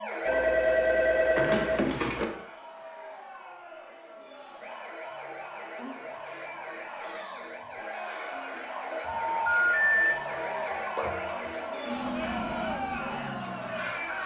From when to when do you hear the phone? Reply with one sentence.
The phone can be heard from 0.2 to 2.2 s and from 9.1 to 10.2 s.